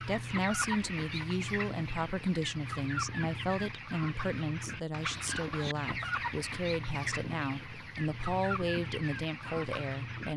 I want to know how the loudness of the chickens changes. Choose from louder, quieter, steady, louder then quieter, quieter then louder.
steady.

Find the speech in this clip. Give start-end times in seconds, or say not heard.
0.0-10.3.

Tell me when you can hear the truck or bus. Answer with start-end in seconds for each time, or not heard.
not heard.